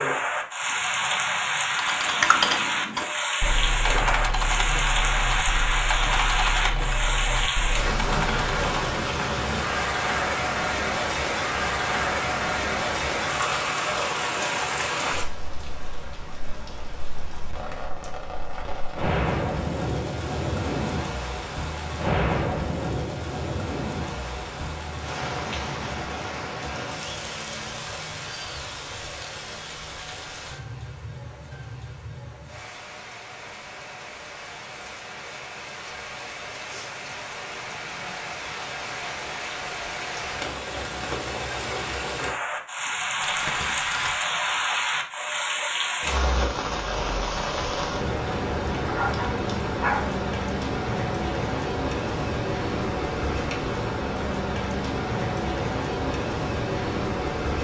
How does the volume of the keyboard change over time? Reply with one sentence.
The loudness of the keyboard goes down.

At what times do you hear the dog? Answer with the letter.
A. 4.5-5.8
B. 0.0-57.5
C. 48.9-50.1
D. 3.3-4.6
C.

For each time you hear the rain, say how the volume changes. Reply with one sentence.
The rain can be heard from 0.0 to 57.5 s, getting quieter then louder.